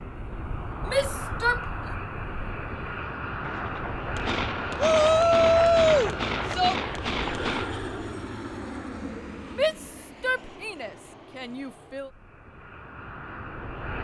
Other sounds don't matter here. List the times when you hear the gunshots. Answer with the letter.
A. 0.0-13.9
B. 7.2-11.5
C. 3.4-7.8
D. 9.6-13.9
C.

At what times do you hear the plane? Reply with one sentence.
The plane can be heard from 0.0 to 13.9 s.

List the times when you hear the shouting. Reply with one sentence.
You can hear the shouting from 0.8 to 1.9 s, from 4.8 to 6.8 s and from 9.6 to 12.1 s.